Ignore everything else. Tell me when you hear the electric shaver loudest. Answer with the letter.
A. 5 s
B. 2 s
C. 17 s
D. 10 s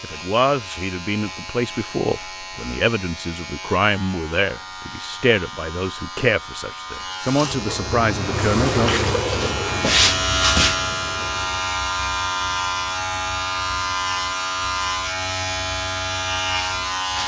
D.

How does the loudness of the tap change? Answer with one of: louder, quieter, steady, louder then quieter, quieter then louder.
louder then quieter.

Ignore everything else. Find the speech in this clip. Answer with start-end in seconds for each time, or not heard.
0.0-8.9.